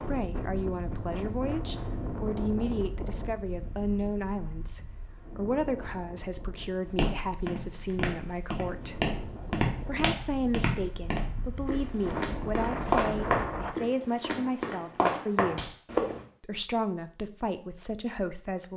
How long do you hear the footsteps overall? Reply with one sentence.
The footsteps can be heard for 9 seconds in total.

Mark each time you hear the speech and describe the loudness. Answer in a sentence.
The speech can be heard from 0.0 to 9.0 s, at a steady volume; from 9.8 to 15.8 s, at a steady volume; and briefly from 16.4 to 18.7 s.